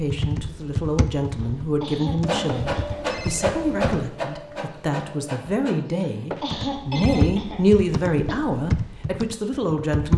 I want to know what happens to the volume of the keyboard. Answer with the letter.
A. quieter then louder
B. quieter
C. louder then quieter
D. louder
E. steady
A.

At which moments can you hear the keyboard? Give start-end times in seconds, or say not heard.
0.0-4.1, 6.5-10.1.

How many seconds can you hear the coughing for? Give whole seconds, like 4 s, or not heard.
4 s.